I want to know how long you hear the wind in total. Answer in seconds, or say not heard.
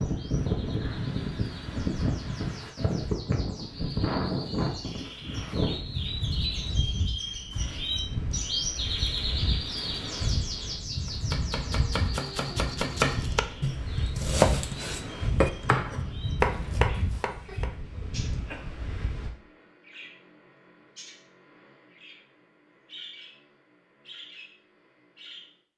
19 s.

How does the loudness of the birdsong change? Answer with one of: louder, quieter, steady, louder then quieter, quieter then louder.
louder then quieter.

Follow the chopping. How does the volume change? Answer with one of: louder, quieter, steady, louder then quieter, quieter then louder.
louder.